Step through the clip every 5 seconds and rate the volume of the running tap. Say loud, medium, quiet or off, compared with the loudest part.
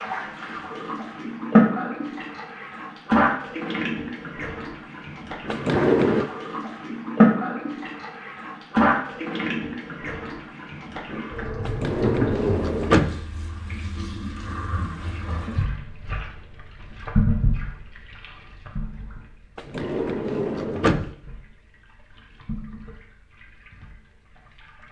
loud, loud, medium, medium, quiet.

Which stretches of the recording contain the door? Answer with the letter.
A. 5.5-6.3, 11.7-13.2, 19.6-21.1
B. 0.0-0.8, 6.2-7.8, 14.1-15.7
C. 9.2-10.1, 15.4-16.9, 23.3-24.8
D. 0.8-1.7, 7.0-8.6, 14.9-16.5
A.